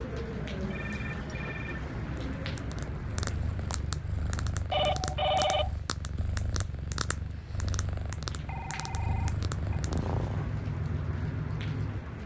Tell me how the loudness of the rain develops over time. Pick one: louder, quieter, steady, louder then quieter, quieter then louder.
quieter then louder.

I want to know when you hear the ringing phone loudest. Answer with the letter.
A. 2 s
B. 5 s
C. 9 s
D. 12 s
B.